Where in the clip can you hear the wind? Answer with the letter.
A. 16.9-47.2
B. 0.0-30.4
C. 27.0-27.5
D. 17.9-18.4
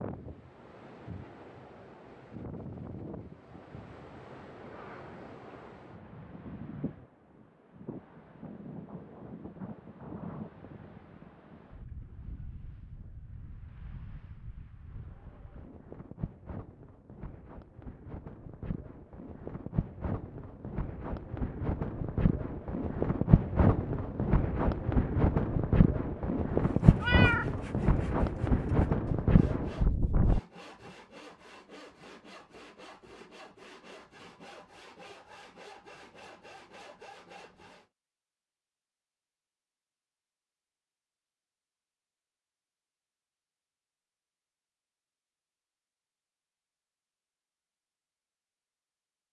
B.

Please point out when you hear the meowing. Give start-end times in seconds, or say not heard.
27.0-27.5.